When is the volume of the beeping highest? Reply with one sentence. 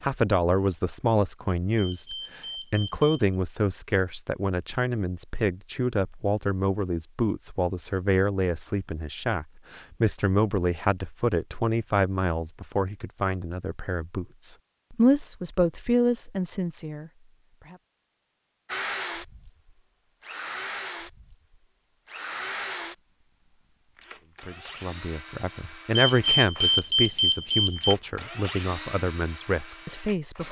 The volume of the beeping peaks at 27 seconds.